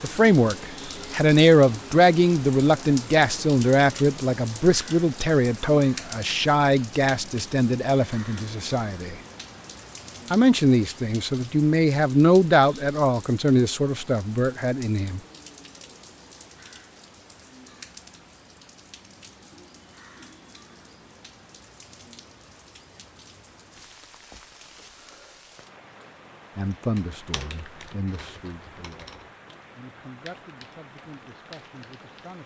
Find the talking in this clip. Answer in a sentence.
You can hear the talking from 0.0 to 9.2 s, from 10.3 to 15.2 s and from 26.6 to 32.4 s.